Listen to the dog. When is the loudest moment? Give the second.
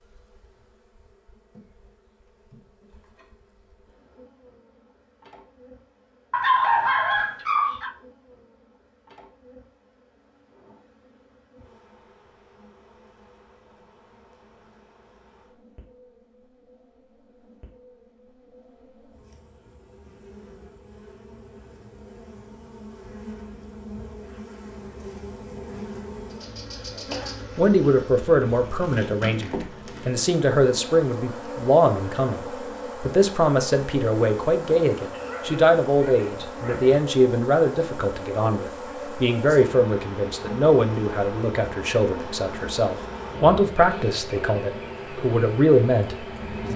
7 s.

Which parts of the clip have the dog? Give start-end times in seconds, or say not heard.
6.3-8.0, 35.1-37.0.